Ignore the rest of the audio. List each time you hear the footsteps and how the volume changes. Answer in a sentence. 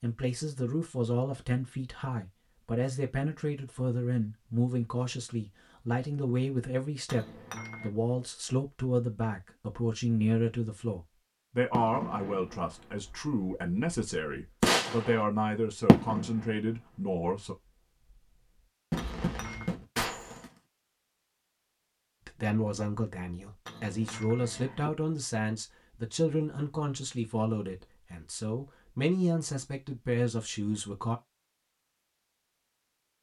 You can't hear the footsteps here.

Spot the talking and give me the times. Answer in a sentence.
The talking can be heard from 0.0 to 17.6 s and from 22.2 to 31.2 s.